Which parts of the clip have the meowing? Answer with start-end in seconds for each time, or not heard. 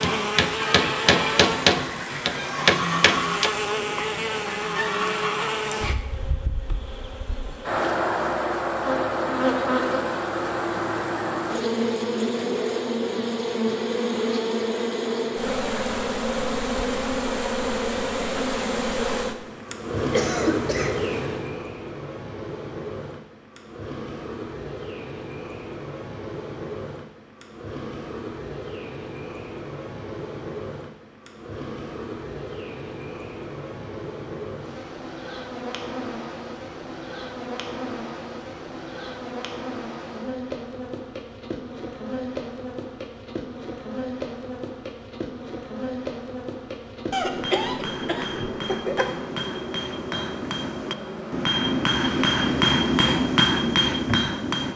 not heard.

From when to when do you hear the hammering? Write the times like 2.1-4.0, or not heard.
0.0-3.5, 47.2-54.7.